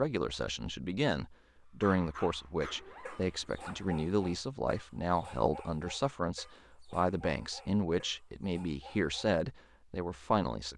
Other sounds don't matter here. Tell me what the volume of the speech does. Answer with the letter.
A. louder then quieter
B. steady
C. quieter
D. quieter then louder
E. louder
B.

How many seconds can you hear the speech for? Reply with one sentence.
The speech can be heard for 11 seconds in total.